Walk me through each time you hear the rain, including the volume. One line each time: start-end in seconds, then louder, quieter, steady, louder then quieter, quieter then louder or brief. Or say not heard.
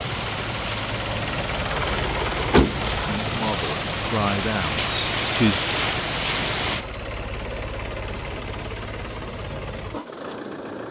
0.0-6.8 louder.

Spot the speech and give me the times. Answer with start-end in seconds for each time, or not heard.
3.0-5.6.